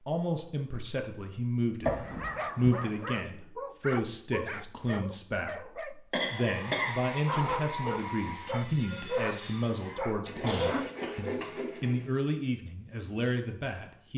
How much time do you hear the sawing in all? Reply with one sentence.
You can hear the sawing for 6 seconds altogether.